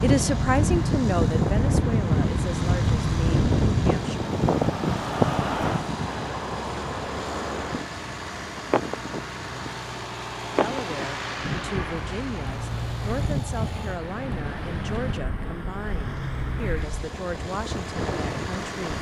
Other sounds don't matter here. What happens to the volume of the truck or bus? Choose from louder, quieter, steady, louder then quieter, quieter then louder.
steady.